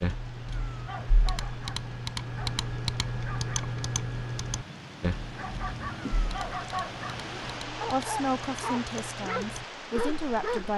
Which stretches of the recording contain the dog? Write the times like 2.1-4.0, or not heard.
1.2-10.7.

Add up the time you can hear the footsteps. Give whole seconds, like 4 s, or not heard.
not heard.